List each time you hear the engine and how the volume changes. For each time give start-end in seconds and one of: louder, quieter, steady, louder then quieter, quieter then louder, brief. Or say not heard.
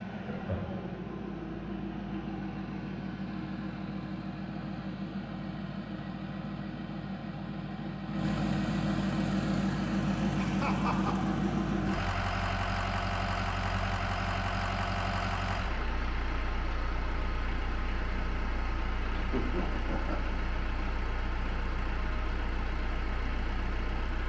0.0-24.2 louder then quieter.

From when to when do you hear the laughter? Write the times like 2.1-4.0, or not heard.
0.2-0.9, 10.3-11.3, 19.1-20.3.